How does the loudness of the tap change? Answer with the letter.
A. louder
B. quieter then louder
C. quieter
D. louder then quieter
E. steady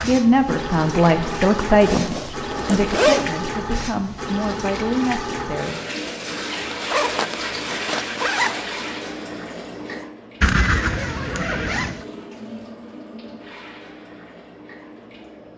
C.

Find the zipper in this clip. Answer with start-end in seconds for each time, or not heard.
1.8-3.2, 6.0-8.6, 10.4-12.0.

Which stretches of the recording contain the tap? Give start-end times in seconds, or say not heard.
0.0-15.5.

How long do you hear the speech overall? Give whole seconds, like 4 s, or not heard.
6 s.